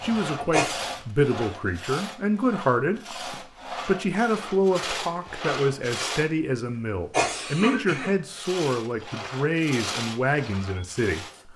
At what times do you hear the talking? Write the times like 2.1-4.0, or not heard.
0.0-3.0, 3.9-11.2.